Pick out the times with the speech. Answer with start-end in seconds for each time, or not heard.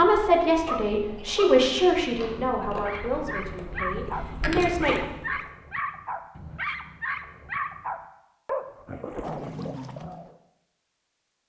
0.0-5.0.